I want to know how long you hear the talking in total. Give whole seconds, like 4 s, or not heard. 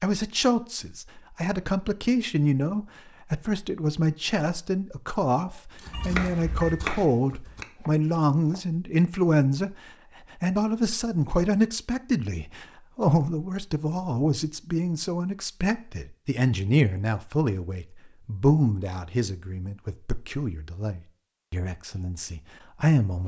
23 s.